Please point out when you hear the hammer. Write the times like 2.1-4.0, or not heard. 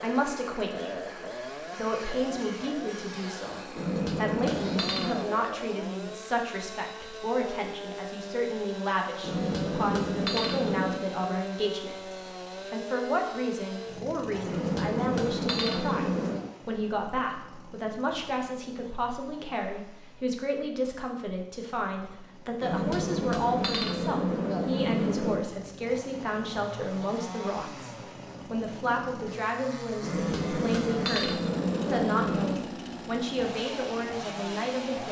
3.8-5.2, 9.2-11.0, 14.4-16.4, 22.6-25.4, 30.0-32.6.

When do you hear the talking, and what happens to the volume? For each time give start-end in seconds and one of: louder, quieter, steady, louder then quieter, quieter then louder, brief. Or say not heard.
0.0-35.0 steady.